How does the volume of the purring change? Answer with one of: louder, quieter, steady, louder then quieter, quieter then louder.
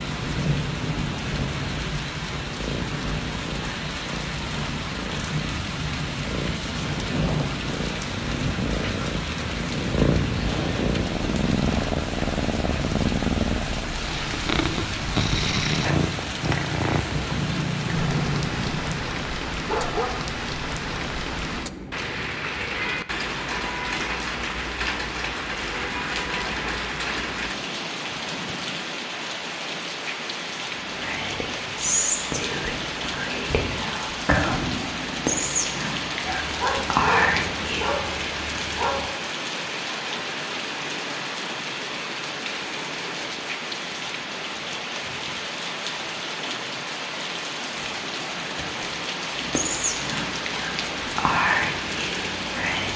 louder.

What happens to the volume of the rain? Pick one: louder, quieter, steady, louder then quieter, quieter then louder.
steady.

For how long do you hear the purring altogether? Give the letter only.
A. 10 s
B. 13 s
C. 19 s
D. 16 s
C.